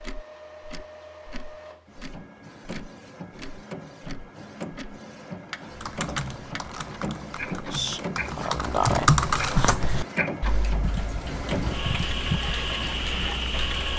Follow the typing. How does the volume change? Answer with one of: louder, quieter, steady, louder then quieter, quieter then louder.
louder then quieter.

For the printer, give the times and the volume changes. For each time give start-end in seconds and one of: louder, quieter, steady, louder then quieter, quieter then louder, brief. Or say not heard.
0.0-13.9 louder.